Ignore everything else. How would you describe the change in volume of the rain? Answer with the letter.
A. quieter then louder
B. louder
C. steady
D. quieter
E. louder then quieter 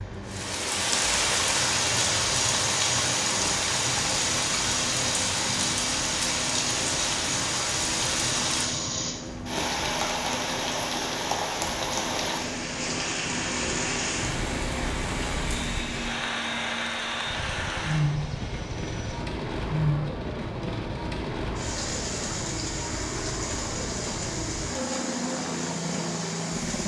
D.